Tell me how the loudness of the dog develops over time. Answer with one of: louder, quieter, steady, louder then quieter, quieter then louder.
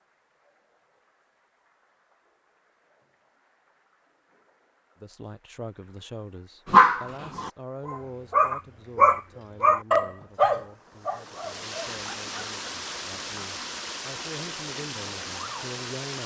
louder then quieter.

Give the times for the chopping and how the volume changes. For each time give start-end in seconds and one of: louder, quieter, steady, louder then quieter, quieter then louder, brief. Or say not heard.
not heard.